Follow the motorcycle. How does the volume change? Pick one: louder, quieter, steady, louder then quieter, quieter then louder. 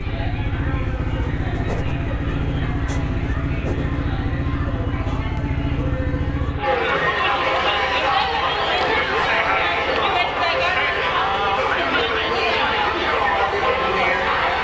quieter.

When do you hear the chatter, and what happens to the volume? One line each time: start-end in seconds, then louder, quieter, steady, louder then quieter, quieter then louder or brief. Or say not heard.
0.0-14.5 louder.